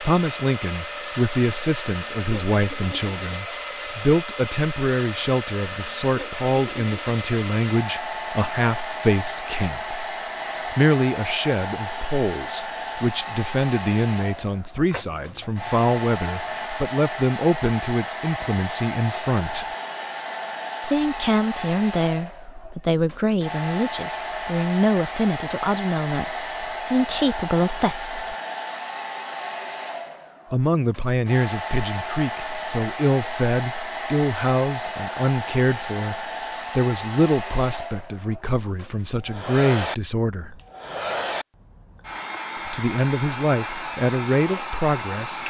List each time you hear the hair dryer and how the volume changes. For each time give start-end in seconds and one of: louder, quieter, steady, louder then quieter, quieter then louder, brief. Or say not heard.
0.0-45.4 steady.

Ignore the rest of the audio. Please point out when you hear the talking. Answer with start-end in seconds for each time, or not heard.
0.0-19.6, 20.9-28.4, 30.5-40.6, 42.6-45.4.